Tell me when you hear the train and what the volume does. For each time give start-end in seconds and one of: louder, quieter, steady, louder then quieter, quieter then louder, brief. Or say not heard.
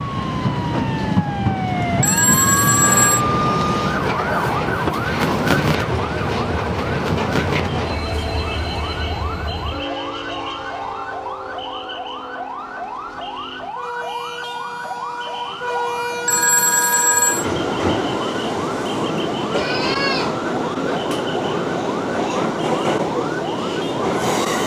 0.0-24.6 quieter then louder.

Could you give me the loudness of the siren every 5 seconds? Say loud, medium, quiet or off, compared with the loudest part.
loud, loud, medium, medium, medium.